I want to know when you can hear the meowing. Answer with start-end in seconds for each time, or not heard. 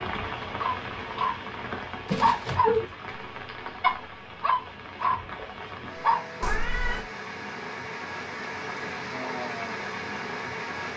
2.0-2.9, 6.4-7.0.